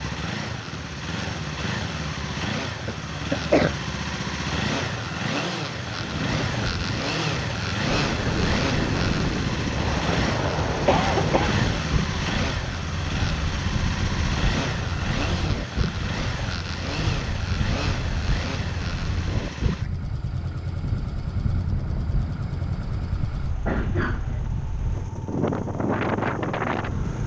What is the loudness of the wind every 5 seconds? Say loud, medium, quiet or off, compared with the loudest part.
off, loud, loud, medium, medium, loud.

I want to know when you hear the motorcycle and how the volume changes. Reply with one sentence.
The motorcycle can be heard from 0.0 to 27.2 s, getting quieter.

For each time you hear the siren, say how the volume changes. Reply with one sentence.
The siren can't be heard in this clip.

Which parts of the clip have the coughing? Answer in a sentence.
The coughing can be heard from 2.9 to 3.8 s, from 10.8 to 11.6 s and from 23.6 to 24.4 s.